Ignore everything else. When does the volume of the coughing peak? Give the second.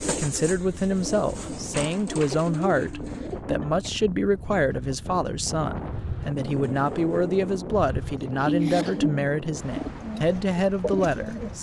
9 s.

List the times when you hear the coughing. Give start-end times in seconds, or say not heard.
3.0-3.9, 8.4-9.1.